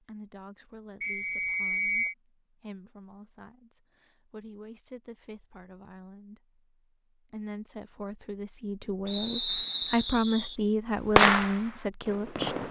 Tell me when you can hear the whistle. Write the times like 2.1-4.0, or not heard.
1.0-2.1, 9.1-10.6.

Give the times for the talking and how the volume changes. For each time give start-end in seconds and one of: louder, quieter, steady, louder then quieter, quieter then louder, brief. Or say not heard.
0.0-12.6 louder.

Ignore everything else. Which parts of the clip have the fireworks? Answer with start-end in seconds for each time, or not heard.
11.1-12.6.